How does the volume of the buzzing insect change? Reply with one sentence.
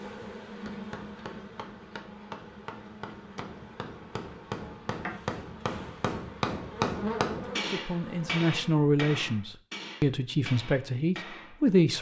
The loudness of the buzzing insect goes down, then up.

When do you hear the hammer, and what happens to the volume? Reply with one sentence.
The hammer can be heard from 0.5 to 11.9 s, getting louder then quieter.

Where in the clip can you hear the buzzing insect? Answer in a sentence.
The buzzing insect can be heard from 0.0 to 8.5 s.